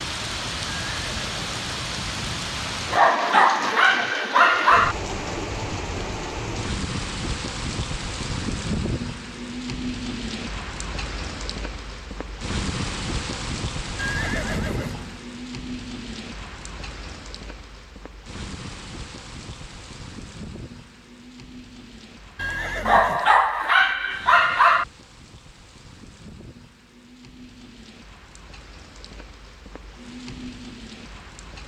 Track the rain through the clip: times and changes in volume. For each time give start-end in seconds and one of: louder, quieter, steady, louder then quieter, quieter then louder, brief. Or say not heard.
0.0-31.6 quieter.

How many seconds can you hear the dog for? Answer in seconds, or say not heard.
4 s.